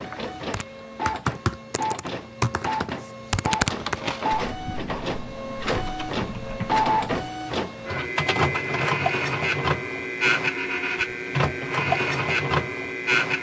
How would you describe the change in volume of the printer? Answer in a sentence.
The volume of the printer goes up.